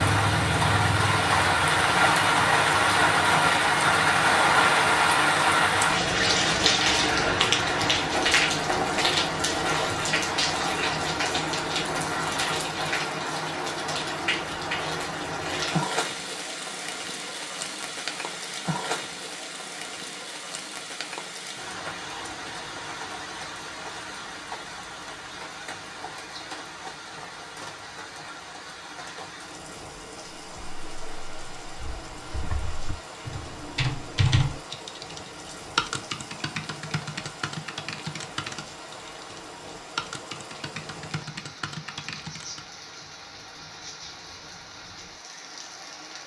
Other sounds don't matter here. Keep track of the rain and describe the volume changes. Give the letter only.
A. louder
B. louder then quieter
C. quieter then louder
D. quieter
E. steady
D.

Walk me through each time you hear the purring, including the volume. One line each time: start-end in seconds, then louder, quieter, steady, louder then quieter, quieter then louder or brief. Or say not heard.
not heard.